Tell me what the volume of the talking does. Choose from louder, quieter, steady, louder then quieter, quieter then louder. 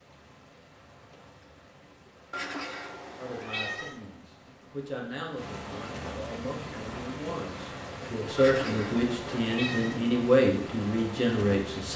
louder.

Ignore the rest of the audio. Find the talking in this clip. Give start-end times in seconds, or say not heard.
3.1-11.9.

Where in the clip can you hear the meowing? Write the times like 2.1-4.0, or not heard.
2.3-4.0, 8.3-10.1.